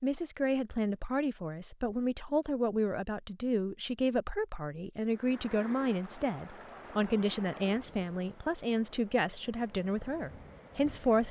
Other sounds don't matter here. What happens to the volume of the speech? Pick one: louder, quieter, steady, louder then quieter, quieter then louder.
steady.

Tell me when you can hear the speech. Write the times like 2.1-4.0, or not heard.
0.0-11.2.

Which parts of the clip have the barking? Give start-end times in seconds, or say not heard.
not heard.